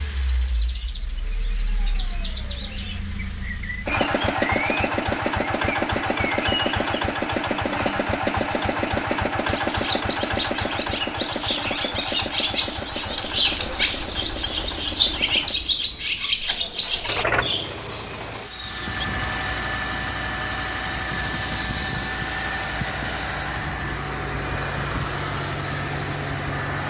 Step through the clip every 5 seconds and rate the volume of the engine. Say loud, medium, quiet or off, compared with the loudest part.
medium, loud, medium, medium, loud, loud.